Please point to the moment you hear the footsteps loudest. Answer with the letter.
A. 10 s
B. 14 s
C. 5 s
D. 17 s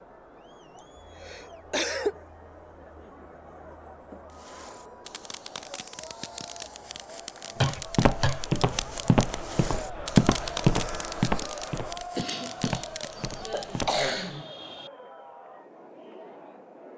A.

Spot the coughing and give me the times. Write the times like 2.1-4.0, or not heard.
0.8-2.2, 7.6-8.4, 12.2-14.9.